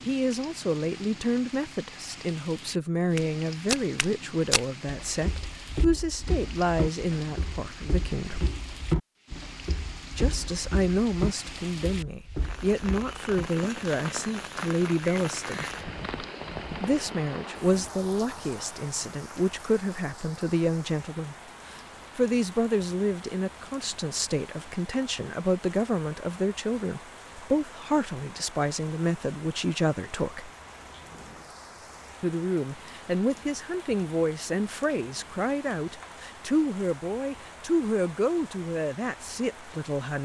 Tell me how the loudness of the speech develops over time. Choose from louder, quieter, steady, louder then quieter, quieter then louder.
steady.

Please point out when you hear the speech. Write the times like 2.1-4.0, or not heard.
0.1-8.5, 10.2-15.7, 16.8-30.5, 32.2-40.2.